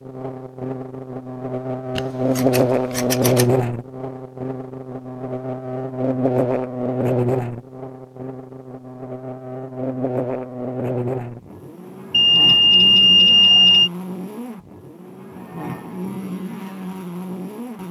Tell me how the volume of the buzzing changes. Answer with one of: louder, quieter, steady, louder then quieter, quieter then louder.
quieter.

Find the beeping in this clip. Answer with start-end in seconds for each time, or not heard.
12.1-13.9.